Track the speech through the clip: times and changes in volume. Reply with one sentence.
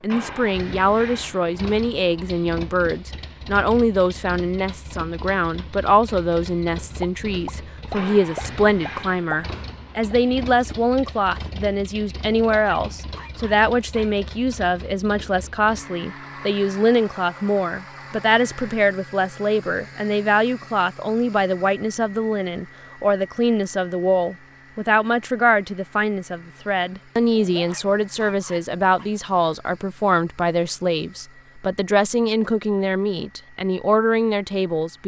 You can hear the speech from 0.0 to 35.0 s, at a steady volume.